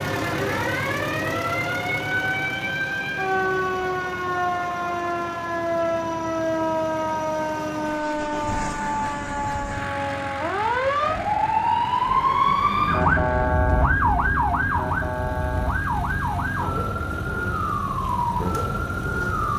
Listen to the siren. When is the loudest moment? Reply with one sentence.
The volume of the siren peaks at 13 seconds.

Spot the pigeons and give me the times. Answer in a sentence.
You can't hear the pigeons here.